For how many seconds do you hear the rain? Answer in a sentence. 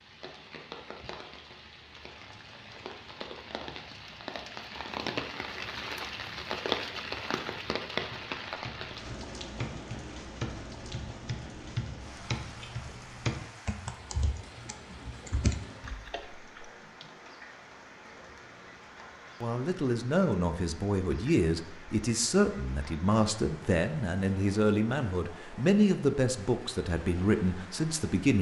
The rain can be heard for 28 seconds in total.